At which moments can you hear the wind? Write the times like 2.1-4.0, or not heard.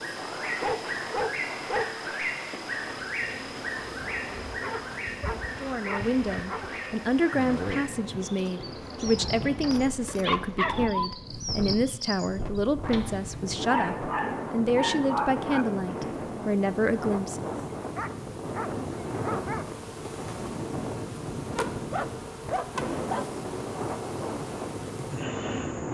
0.0-25.8.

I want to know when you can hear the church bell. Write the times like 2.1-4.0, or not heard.
not heard.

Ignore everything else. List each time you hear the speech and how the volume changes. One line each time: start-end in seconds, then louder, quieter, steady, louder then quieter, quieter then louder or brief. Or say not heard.
5.6-17.6 steady.